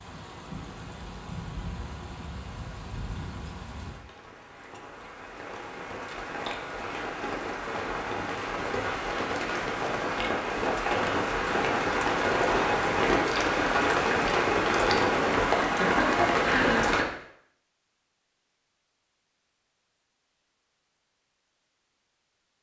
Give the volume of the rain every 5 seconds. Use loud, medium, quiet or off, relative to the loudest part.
quiet, medium, loud, loud, off.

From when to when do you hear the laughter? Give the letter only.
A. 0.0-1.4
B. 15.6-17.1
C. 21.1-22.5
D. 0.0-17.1
B.